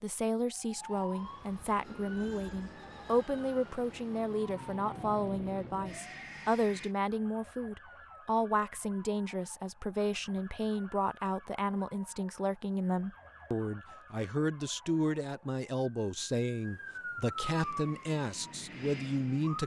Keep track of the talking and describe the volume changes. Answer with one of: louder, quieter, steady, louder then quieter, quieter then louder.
steady.